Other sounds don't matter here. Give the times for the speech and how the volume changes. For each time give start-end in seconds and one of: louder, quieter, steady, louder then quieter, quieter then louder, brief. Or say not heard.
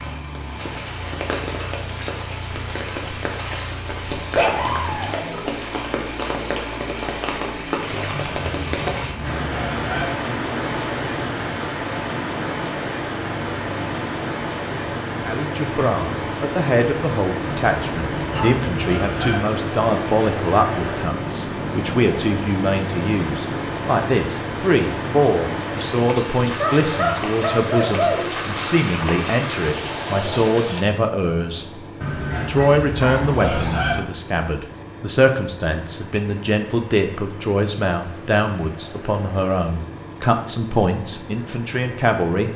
15.2-31.6 steady
32.4-42.5 steady.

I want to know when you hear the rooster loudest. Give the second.
34 s.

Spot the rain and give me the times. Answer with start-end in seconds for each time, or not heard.
0.0-30.8.